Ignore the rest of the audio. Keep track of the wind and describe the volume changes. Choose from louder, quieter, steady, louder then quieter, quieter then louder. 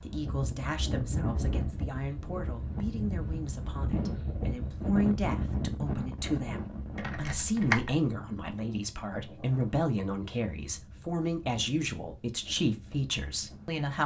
quieter.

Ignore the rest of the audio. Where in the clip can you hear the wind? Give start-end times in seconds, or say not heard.
0.0-13.8.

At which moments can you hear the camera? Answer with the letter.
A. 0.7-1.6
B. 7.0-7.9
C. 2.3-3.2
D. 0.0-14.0
B.